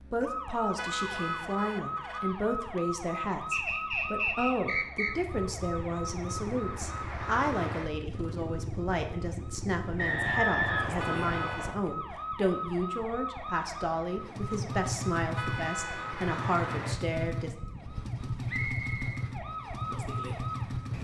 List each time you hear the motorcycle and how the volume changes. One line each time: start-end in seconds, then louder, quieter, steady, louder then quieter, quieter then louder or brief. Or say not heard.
5.0-11.6 steady
14.1-20.9 steady.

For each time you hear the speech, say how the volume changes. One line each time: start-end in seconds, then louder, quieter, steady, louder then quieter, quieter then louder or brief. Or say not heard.
0.0-17.5 steady.